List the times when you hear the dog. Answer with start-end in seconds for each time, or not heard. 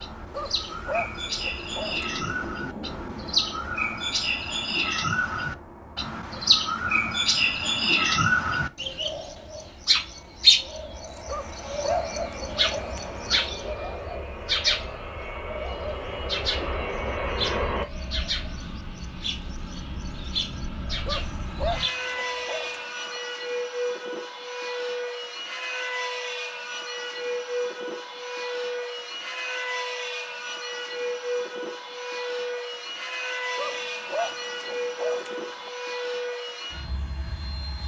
0.3-2.5, 11.2-13.2, 21.1-23.2, 33.5-35.7.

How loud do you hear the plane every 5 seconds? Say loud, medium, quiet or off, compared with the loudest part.
medium, quiet, medium, loud, loud, loud, loud, loud.